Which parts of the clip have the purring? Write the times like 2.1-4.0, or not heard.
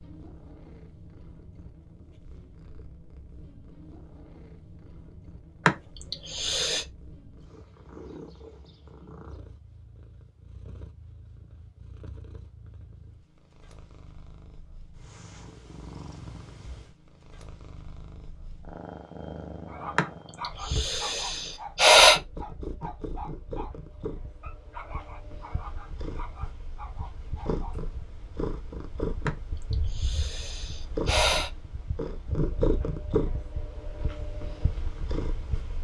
0.0-35.8.